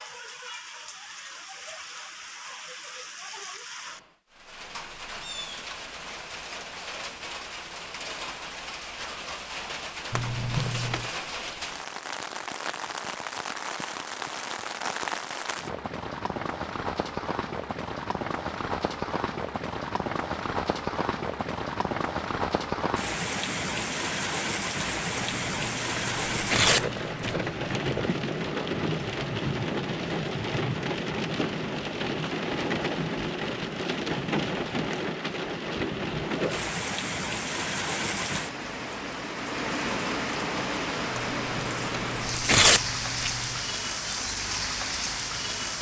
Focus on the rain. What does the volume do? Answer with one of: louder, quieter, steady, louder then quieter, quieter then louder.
louder.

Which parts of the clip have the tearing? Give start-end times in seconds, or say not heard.
10.1-11.1, 25.1-27.4, 41.1-43.6.